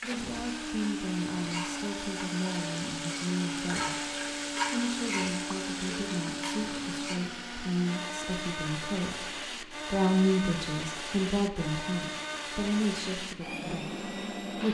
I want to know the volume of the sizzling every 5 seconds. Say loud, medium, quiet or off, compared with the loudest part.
loud, loud, off.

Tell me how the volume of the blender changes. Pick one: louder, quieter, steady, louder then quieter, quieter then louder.
steady.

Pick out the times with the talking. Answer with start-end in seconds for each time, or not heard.
0.0-14.6.